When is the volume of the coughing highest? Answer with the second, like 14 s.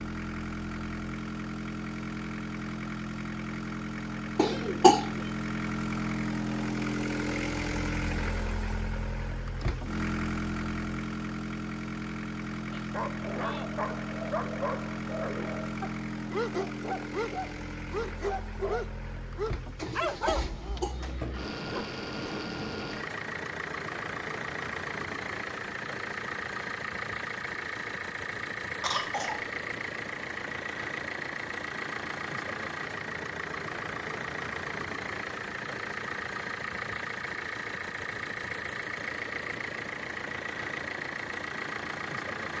5 s.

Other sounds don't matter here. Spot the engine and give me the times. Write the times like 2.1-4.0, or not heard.
0.0-42.5.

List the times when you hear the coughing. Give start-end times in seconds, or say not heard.
4.3-5.0, 19.8-21.6, 28.8-29.4.